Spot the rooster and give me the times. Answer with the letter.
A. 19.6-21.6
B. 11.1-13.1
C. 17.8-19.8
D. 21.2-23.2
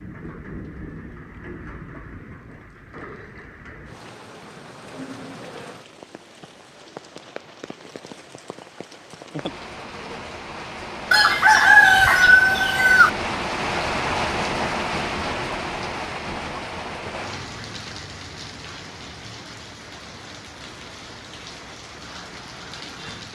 B.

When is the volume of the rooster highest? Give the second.
12 s.